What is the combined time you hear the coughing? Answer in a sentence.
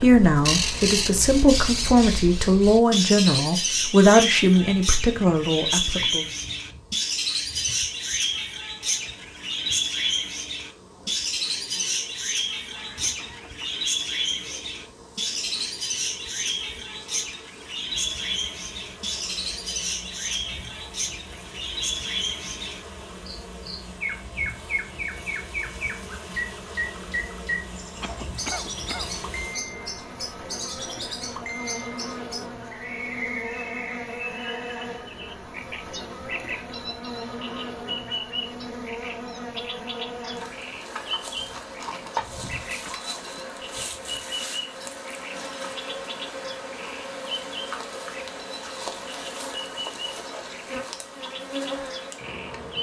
The coughing can be heard for 3 seconds in total.